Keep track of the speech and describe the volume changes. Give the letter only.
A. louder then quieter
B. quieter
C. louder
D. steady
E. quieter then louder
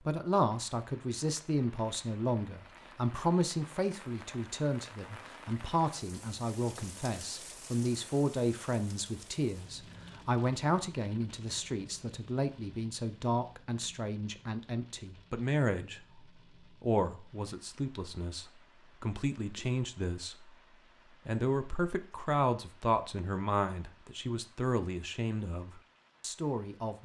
D.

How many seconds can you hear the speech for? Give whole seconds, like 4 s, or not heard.
26 s.